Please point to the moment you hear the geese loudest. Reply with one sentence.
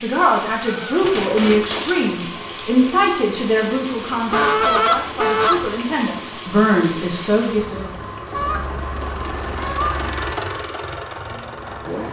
The loudest moment of the geese is at 5 seconds.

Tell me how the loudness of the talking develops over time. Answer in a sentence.
The volume of the talking goes down, then up.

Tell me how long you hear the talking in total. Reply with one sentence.
You can hear the talking for 8 seconds altogether.